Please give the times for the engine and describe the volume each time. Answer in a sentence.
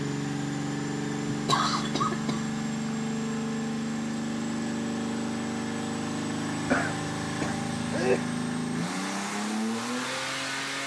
The engine can be heard from 0.0 to 10.8 s, at a steady volume.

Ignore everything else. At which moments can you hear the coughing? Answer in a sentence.
You can hear the coughing from 1.3 to 2.5 s and from 6.7 to 8.2 s.